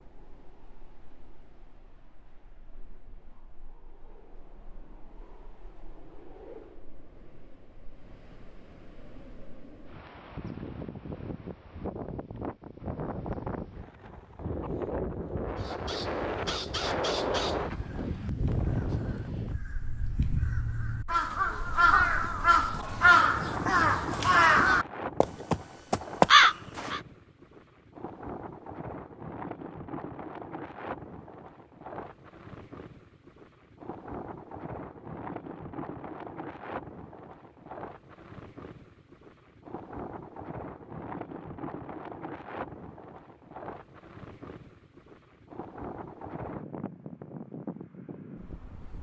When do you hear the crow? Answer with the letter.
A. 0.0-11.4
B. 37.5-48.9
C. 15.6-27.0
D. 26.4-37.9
C.